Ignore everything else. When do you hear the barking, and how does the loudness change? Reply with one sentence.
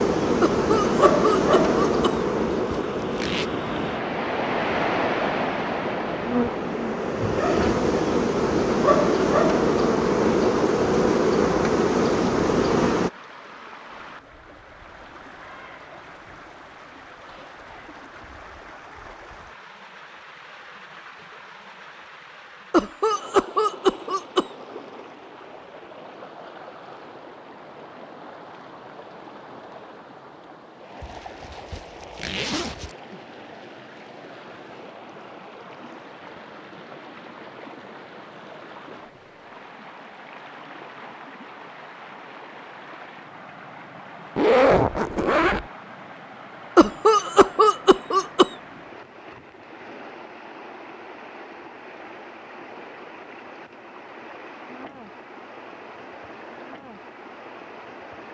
The barking can't be heard in this clip.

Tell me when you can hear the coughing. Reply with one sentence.
The coughing can be heard from 0.4 to 2.3 s, from 22.7 to 24.4 s and from 46.8 to 48.5 s.